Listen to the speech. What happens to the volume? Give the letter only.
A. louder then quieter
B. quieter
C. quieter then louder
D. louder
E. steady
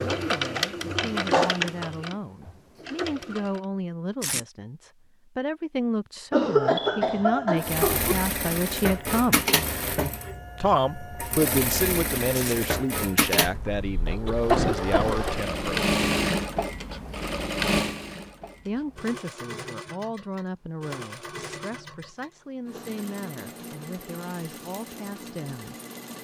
A.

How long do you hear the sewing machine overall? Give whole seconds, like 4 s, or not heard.
22 s.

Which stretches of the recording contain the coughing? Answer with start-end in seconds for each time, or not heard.
6.3-8.2, 14.5-15.2.